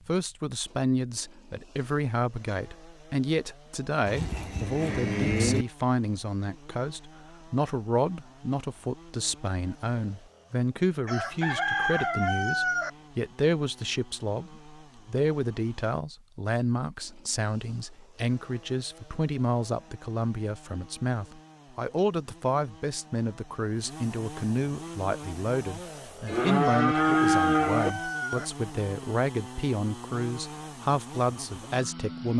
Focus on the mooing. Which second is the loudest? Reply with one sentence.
The loudest moment of the mooing is at 27 seconds.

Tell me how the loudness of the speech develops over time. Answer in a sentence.
The loudness of the speech stays about the same.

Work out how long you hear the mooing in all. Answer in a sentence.
You can hear the mooing for 3 seconds altogether.